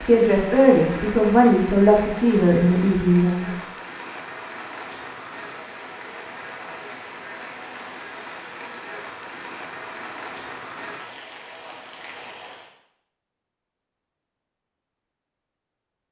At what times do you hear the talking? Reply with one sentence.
You can hear the talking from 0.0 to 3.5 s.